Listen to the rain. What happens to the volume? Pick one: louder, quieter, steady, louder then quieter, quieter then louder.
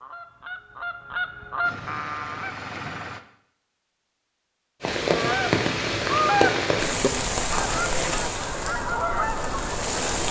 quieter.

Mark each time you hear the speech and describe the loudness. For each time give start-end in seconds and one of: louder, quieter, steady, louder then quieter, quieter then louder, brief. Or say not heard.
not heard.